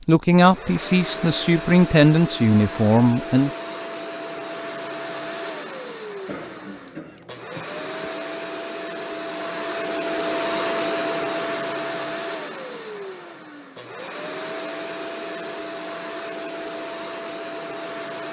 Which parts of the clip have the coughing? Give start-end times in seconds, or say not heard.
6.2-8.2.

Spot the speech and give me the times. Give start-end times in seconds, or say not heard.
0.1-3.5.